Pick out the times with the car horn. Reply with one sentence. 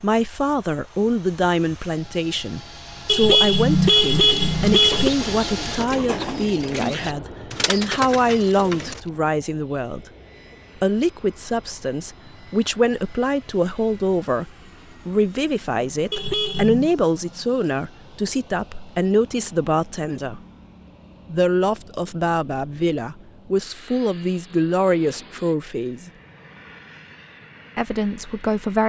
The car horn can be heard from 3.0 to 5.1 s and from 16.1 to 16.9 s.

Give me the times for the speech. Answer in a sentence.
The speech can be heard from 0.0 to 10.1 s, from 10.8 to 20.4 s, from 21.3 to 26.1 s and from 27.8 to 28.8 s.